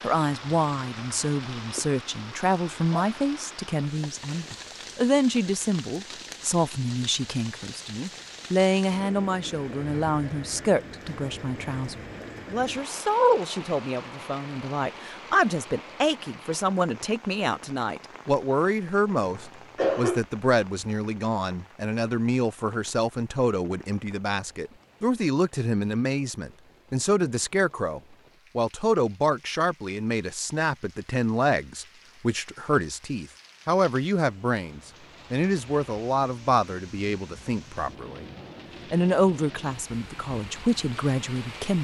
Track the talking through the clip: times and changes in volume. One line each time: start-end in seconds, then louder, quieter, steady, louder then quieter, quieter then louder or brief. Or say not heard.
0.0-38.2 steady
38.9-41.7 brief.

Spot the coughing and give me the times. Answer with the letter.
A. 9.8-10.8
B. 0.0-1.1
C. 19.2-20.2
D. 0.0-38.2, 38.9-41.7
C.